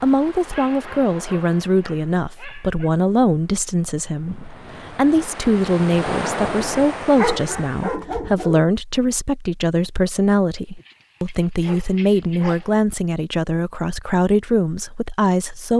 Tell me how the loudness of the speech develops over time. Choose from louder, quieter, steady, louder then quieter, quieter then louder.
steady.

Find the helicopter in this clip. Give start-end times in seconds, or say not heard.
not heard.